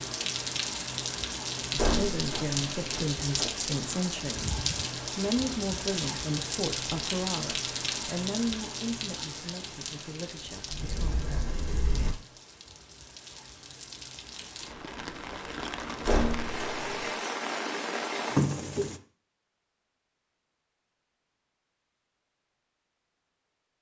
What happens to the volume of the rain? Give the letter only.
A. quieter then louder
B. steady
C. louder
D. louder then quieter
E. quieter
A.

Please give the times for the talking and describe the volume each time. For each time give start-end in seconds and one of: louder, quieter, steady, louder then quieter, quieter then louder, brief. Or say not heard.
1.8-11.3 quieter.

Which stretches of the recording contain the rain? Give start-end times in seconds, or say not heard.
0.0-19.0.